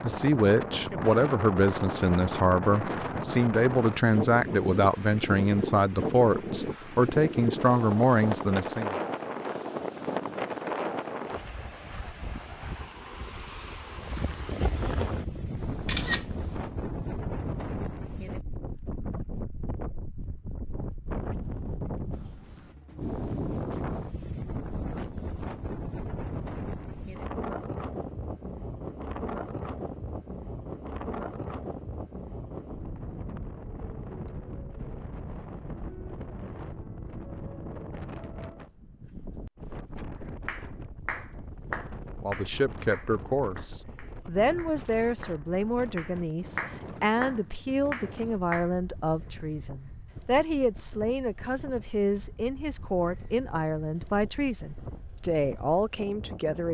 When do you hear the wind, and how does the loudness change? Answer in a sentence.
The wind can be heard from 0.0 to 56.6 s, getting quieter.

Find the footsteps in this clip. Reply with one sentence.
The footsteps can't be heard in this clip.